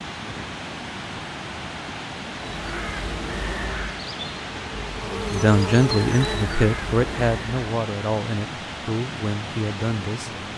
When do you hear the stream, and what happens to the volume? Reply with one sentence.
The stream can be heard from 0.0 to 10.5 s, at a steady volume.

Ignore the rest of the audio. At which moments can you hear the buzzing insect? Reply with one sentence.
The buzzing insect can be heard from 2.4 to 7.6 s.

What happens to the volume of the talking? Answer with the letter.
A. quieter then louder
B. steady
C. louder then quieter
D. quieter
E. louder
D.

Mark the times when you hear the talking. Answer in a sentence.
The talking can be heard from 5.3 to 10.5 s.